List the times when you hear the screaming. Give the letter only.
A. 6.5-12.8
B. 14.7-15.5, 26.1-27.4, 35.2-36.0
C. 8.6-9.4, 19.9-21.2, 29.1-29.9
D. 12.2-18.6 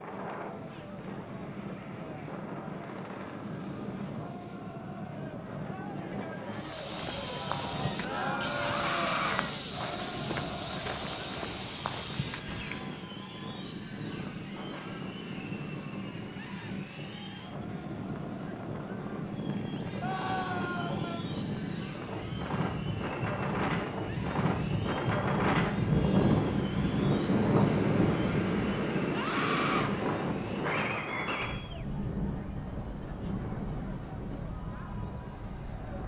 C.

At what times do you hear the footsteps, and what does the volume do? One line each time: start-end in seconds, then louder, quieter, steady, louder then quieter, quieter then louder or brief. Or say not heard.
6.5-12.8 steady.